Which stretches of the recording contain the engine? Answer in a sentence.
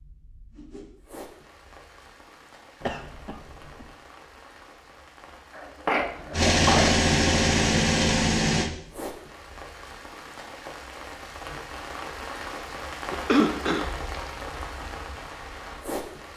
You can hear the engine from 6.3 to 8.7 s.